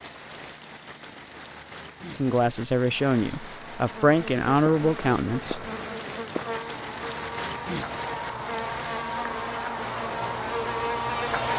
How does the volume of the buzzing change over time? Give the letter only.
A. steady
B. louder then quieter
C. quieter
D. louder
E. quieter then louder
D.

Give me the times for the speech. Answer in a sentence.
You can hear the speech from 2.1 to 5.7 s.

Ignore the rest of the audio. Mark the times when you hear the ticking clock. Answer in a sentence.
The ticking clock can't be heard in this clip.